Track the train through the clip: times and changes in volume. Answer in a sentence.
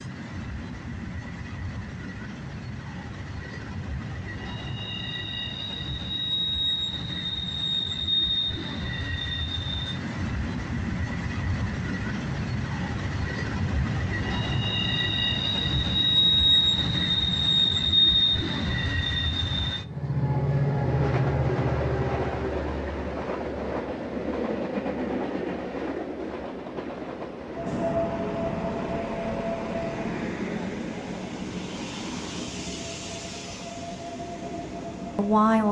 The train can be heard from 0.0 to 35.6 s, getting louder then quieter.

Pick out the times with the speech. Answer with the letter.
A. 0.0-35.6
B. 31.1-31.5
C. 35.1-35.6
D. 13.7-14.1
C.